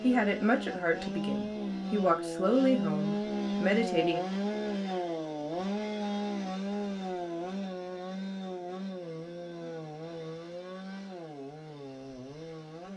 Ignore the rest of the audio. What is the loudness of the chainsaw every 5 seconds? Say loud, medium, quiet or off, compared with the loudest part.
loud, loud, medium.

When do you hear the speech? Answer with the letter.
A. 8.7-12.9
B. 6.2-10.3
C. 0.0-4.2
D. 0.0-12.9
C.